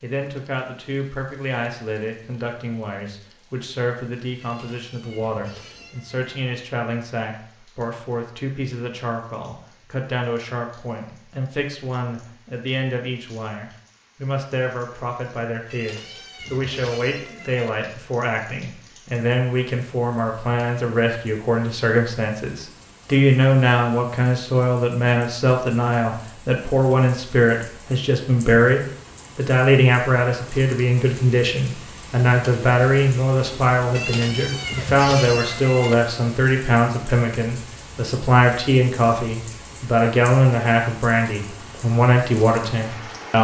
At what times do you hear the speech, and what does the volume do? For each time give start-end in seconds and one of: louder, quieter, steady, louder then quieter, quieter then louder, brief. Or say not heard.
0.0-43.3 louder.